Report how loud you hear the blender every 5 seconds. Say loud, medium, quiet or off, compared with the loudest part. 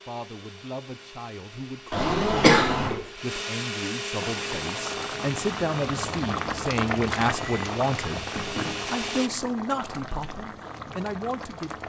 loud, loud, off.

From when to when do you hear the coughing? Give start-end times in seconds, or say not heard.
1.9-3.0, 8.2-9.0.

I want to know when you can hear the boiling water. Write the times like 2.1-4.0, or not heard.
4.2-11.8.